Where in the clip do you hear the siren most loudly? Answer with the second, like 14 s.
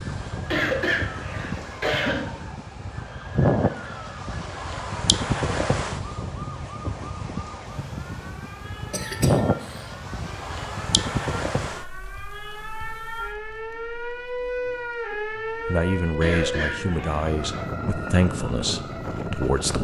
15 s.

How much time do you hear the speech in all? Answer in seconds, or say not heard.
4 s.